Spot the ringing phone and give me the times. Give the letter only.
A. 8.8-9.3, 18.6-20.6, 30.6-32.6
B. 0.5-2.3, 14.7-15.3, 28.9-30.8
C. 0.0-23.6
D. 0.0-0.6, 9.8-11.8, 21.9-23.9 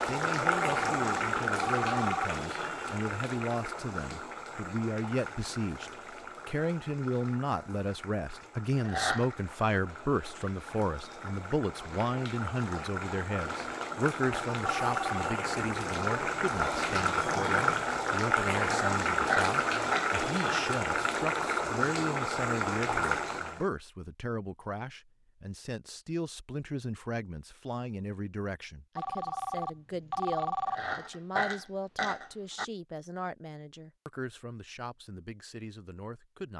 B.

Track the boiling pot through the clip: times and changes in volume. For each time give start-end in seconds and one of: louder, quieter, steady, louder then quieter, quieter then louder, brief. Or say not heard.
0.0-23.6 quieter then louder.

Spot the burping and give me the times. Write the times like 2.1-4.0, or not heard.
8.8-9.3, 18.6-20.6, 30.6-32.6.